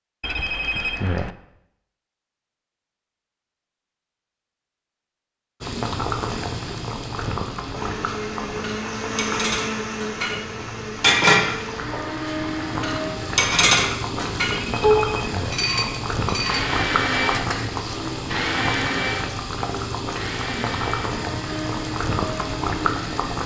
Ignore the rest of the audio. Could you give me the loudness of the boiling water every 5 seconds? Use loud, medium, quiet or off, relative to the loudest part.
off, loud, loud, loud, loud.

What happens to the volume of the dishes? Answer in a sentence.
The loudness of the dishes goes up, then down.